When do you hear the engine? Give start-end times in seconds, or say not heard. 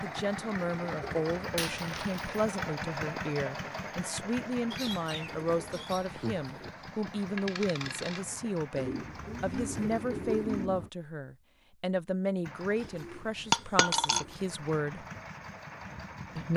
0.0-10.7, 12.4-16.5.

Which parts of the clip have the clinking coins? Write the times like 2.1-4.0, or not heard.
1.4-2.4, 7.3-8.5, 13.5-14.2.